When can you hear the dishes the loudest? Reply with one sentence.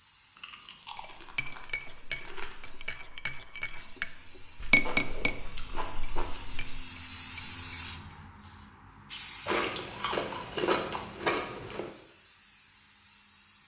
The loudest moment of the dishes is at 5 seconds.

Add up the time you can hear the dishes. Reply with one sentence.
You can hear the dishes for 7 seconds altogether.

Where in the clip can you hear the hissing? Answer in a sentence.
The hissing can be heard from 0.0 to 13.6 s.